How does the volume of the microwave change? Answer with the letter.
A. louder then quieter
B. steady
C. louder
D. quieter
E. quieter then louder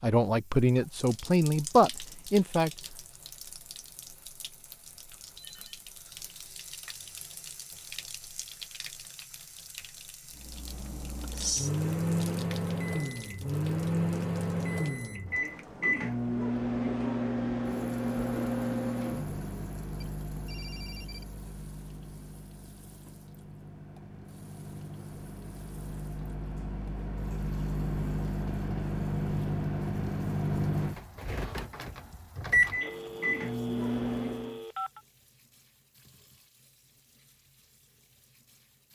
E.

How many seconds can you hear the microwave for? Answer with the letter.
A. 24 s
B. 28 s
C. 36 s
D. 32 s
A.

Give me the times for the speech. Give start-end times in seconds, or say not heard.
0.0-2.7.